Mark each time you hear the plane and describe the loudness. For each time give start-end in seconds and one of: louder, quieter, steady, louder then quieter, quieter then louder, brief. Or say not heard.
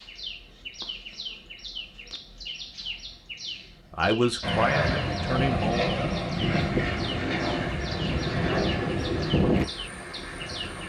4.4-10.8 steady.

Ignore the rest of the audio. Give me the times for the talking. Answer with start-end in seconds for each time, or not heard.
3.9-5.9.